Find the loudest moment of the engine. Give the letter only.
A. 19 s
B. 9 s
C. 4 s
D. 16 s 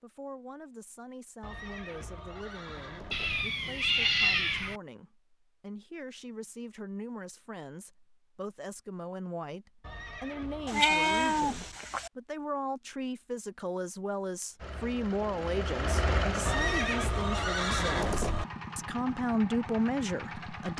D.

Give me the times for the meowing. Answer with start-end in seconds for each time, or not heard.
3.1-4.8, 10.7-12.1.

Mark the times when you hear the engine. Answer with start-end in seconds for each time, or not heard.
14.6-20.7.